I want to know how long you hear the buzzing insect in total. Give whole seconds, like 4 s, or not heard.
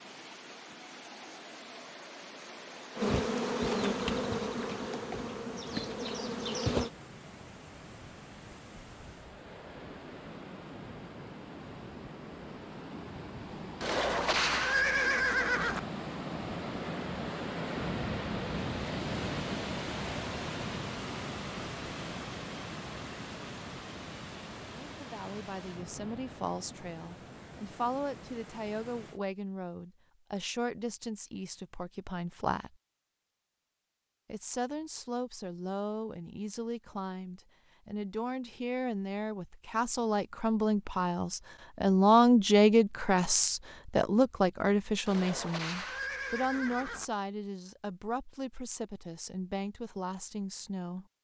4 s.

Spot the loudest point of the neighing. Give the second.
15 s.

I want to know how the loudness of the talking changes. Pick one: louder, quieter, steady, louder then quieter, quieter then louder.
louder then quieter.